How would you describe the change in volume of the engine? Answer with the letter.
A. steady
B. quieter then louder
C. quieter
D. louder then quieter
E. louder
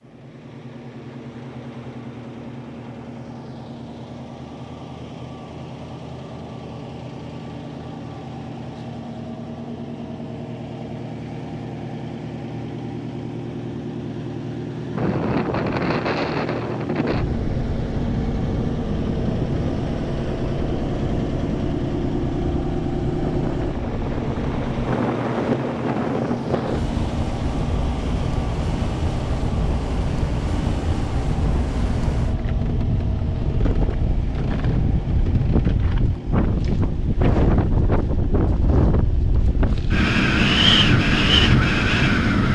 D.